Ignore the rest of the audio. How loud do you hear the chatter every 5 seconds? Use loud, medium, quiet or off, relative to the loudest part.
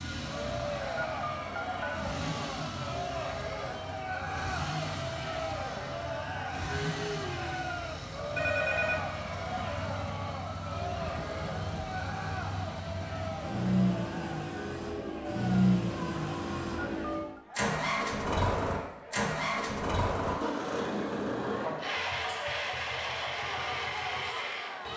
loud, loud, loud, medium, medium.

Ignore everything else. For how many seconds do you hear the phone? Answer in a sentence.
The phone can be heard for 2 seconds in total.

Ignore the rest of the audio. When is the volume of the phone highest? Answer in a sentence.
The volume of the phone peaks at 9 seconds.